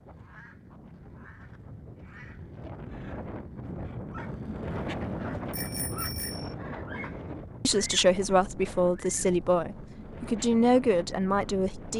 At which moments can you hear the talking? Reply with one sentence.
You can hear the talking from 7.6 to 11.9 s.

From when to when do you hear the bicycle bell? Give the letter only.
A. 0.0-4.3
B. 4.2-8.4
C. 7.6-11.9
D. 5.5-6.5
D.